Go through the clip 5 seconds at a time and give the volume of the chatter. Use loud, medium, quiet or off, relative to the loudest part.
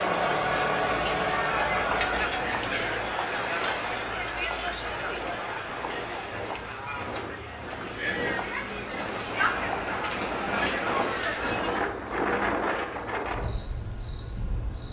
loud, medium, loud.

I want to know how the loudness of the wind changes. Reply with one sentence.
The volume of the wind goes up.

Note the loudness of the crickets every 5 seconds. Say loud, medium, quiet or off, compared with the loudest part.
medium, medium, loud.